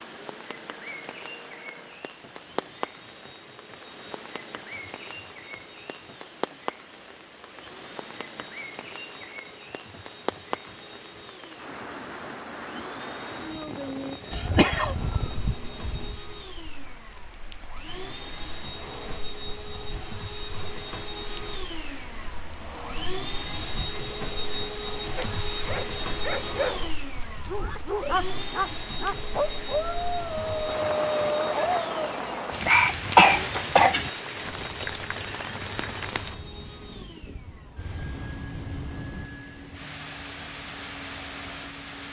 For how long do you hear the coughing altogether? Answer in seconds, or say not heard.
3 s.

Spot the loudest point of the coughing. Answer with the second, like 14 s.
33 s.